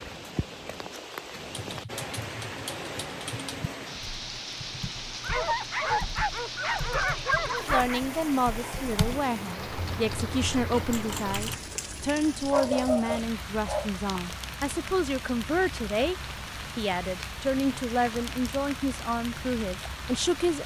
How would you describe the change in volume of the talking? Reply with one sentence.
The loudness of the talking stays about the same.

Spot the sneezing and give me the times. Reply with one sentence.
You can't hear the sneezing here.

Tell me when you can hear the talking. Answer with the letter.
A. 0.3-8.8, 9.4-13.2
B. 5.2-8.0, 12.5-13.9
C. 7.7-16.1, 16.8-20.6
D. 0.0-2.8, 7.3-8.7
C.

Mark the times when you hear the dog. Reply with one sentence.
The dog can be heard from 5.2 to 8.0 s and from 12.5 to 13.9 s.